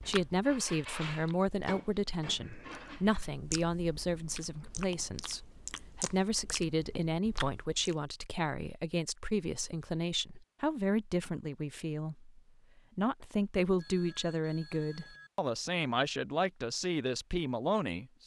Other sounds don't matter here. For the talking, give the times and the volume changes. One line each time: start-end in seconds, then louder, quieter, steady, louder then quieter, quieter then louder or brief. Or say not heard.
0.0-18.2 steady.